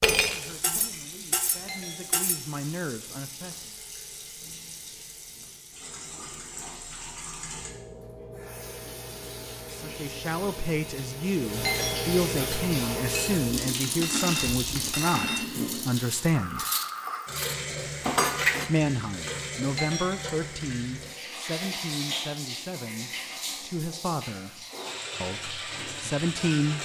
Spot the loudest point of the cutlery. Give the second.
18 s.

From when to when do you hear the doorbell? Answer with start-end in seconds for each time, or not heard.
1.6-2.2, 11.7-12.2, 19.8-20.4.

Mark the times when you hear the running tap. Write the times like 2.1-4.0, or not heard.
0.0-26.8.